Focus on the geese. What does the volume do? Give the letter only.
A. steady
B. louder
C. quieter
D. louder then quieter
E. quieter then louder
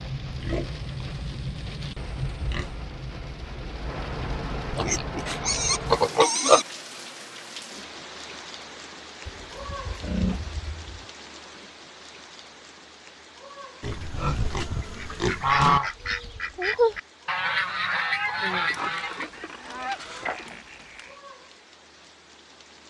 C.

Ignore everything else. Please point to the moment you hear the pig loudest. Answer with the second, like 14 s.
6 s.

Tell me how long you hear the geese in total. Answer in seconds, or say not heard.
5 s.